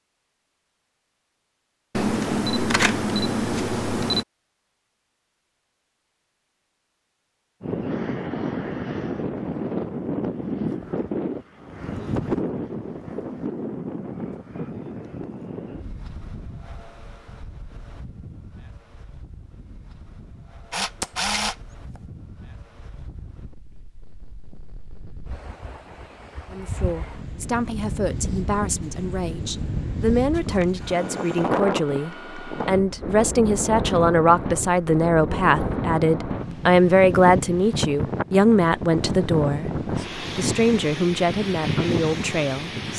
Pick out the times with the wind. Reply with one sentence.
The wind can be heard from 7.6 to 42.9 s.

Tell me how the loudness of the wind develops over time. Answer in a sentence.
The volume of the wind goes down, then up.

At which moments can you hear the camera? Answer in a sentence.
The camera can be heard from 1.9 to 4.2 s, from 20.7 to 22.0 s and from 30.3 to 31.5 s.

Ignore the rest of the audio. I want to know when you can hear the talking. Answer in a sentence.
The talking can be heard from 26.5 to 42.9 s.